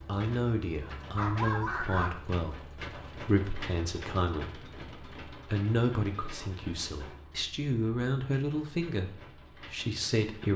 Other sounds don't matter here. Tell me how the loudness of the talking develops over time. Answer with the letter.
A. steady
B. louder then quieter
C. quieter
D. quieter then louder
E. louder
A.